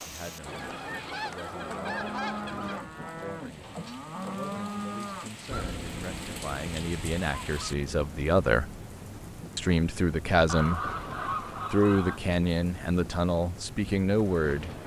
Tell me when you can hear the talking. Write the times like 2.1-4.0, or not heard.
0.0-8.7, 9.6-10.9, 11.7-14.7.